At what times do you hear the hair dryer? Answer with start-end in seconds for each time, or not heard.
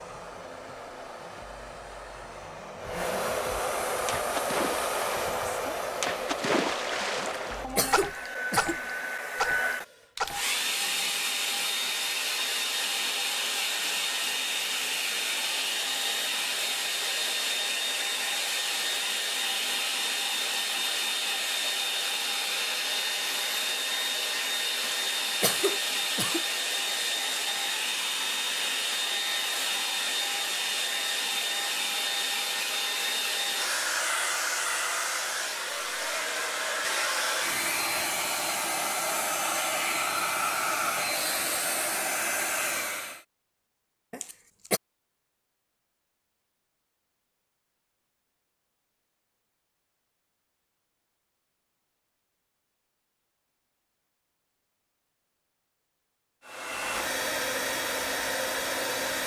0.0-43.2, 56.5-59.2.